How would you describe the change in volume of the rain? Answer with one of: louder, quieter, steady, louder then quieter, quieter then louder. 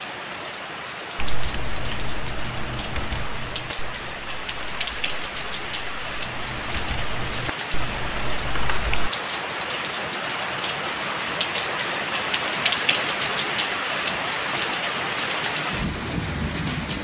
louder.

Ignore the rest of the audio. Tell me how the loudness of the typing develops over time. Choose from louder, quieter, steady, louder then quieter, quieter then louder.
quieter then louder.